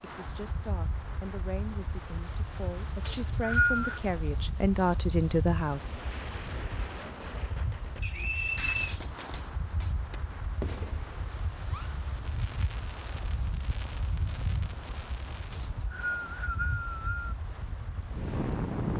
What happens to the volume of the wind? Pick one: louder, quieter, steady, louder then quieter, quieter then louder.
steady.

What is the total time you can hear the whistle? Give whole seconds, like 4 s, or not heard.
4 s.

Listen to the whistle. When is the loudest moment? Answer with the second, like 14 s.
4 s.